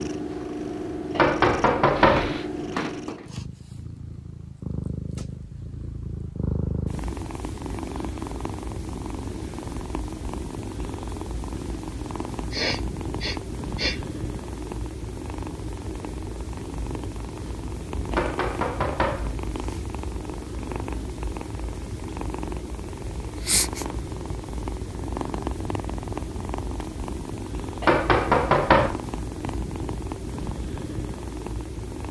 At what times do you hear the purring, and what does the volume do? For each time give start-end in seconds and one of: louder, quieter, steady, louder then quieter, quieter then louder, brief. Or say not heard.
0.0-32.0 steady.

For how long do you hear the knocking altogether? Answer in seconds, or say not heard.
4 s.